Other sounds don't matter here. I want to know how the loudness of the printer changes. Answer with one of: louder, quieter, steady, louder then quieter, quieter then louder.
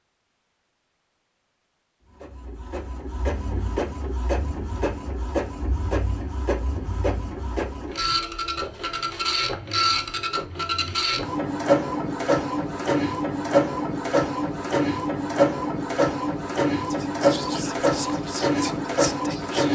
louder.